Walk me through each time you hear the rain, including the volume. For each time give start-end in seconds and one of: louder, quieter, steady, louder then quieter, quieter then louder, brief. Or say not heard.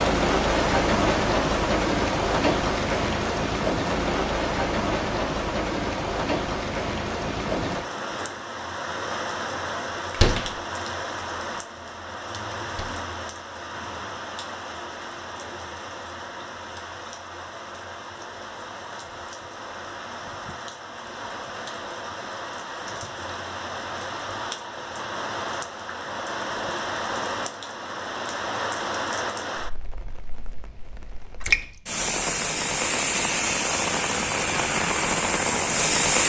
0.0-36.2 quieter then louder.